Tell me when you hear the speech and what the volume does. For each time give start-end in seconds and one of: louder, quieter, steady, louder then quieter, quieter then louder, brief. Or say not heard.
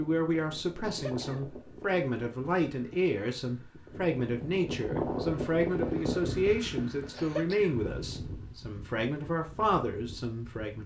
0.0-10.8 steady.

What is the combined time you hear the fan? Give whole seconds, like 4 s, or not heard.
11 s.